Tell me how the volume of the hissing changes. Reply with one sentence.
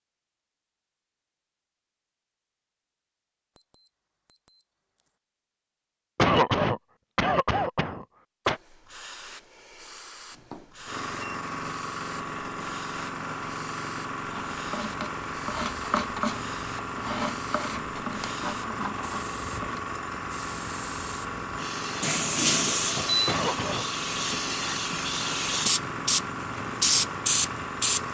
The loudness of the hissing goes up.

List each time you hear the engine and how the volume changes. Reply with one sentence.
You can hear the engine from 10.8 to 28.0 s, at a steady volume.